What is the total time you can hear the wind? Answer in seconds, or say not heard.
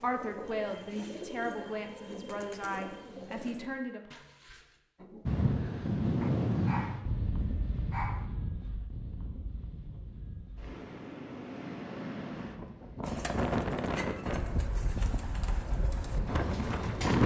12 s.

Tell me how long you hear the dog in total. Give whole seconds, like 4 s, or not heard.
2 s.